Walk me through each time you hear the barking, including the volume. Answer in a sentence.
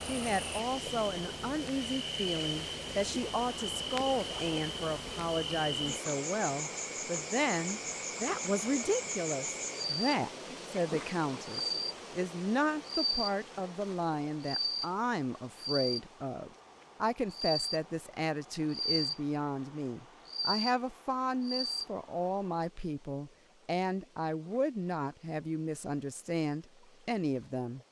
You can't hear the barking here.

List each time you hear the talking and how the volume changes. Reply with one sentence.
You can hear the talking from 0.1 to 27.8 s, at a steady volume.